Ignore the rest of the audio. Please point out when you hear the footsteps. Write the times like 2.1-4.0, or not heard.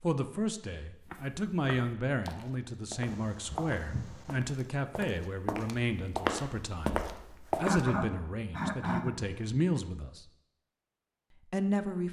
1.1-7.9.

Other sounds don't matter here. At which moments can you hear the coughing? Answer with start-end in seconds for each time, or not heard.
3.0-4.4, 7.5-9.6.